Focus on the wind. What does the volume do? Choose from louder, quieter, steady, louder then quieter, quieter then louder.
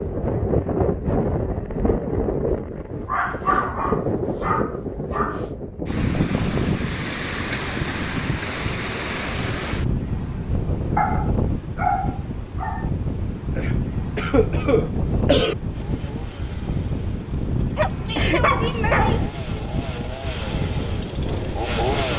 steady.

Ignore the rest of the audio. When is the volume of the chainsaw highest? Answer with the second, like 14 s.
22 s.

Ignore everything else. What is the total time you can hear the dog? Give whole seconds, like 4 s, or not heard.
6 s.